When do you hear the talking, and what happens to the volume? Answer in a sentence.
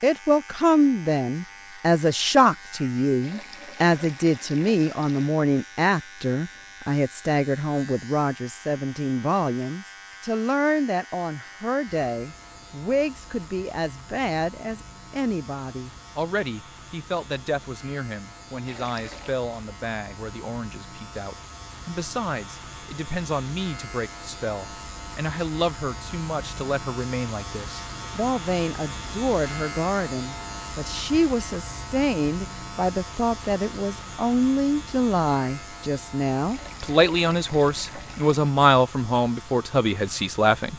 The talking can be heard from 0.0 to 40.7 s, getting quieter then louder.